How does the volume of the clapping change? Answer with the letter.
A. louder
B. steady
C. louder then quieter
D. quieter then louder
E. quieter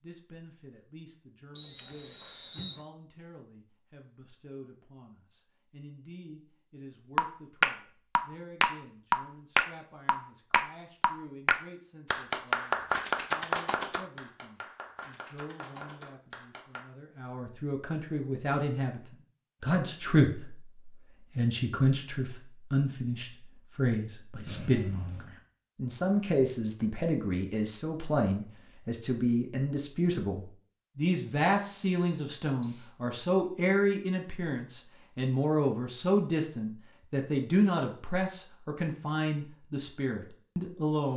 E.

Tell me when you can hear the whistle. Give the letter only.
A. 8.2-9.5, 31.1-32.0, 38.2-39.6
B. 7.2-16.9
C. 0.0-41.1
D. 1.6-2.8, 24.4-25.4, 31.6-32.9
D.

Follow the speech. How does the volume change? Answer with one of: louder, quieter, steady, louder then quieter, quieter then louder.
louder.